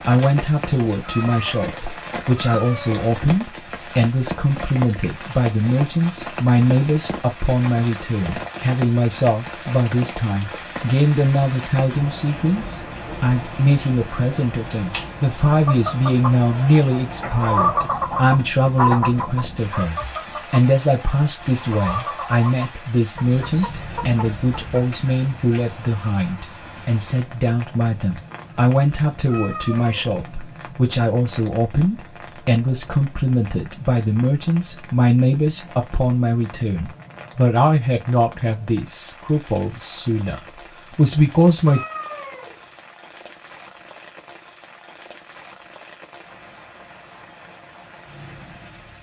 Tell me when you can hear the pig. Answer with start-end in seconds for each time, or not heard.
not heard.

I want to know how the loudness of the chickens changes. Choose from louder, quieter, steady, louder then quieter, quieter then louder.
louder then quieter.